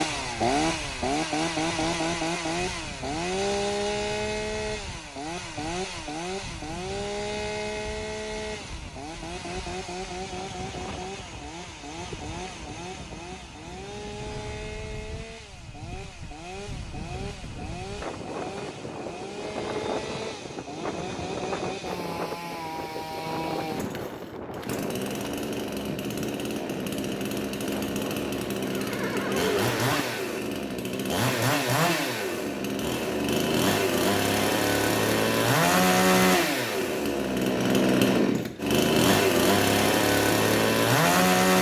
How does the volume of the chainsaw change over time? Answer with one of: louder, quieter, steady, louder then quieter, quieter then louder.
quieter then louder.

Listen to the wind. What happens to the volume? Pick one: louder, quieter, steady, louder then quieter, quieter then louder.
louder.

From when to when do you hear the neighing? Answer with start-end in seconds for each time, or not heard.
28.6-30.0.